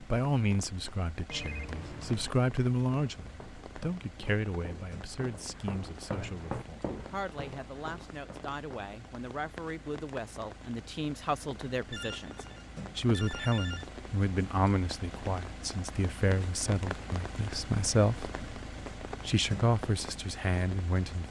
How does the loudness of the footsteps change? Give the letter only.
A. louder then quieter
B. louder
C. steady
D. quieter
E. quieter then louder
A.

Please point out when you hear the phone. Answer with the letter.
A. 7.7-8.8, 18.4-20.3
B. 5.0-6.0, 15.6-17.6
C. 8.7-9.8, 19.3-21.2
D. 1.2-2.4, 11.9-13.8
D.